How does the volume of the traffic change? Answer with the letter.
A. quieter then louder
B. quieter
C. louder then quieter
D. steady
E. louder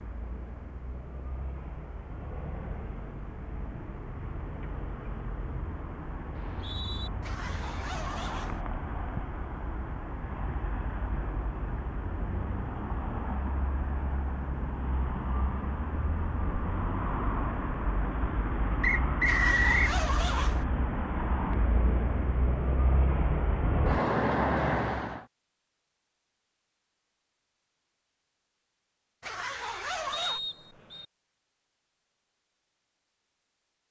E.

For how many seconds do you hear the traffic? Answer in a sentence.
You can hear the traffic for 25 seconds altogether.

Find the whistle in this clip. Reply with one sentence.
You can hear the whistle from 6.3 to 7.1 s, from 18.8 to 19.9 s and from 30.1 to 31.1 s.